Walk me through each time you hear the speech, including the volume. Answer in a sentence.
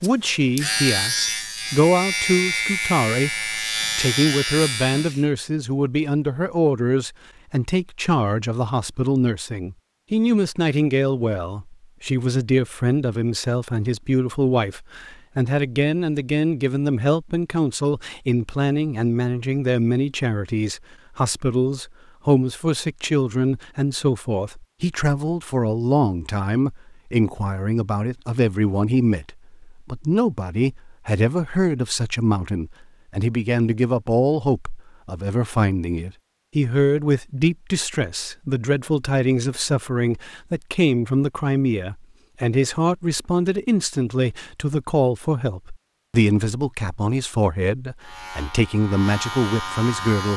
You can hear the speech from 0.0 to 50.3 s, at a steady volume.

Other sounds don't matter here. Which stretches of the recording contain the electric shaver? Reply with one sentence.
The electric shaver can be heard from 0.0 to 5.2 s and from 48.0 to 50.3 s.